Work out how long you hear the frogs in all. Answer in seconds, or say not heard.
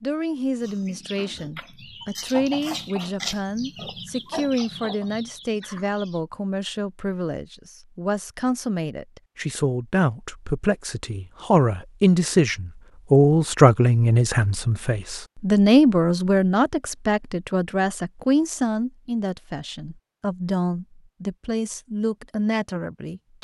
not heard.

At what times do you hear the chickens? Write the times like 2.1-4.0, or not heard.
0.6-6.2.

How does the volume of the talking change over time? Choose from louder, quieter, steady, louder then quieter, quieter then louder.
louder then quieter.